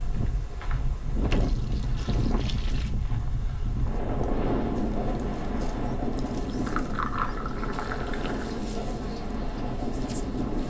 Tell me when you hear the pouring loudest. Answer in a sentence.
The loudest moment of the pouring is at 7 seconds.